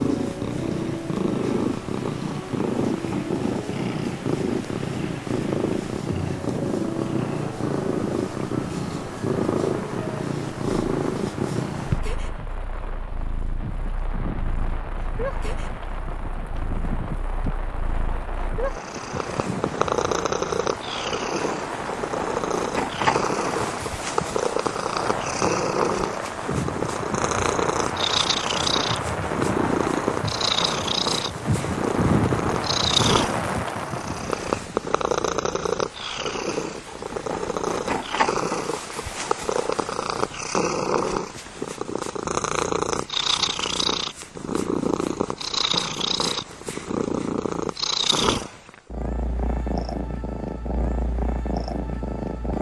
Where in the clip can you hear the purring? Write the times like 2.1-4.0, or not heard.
0.0-52.5.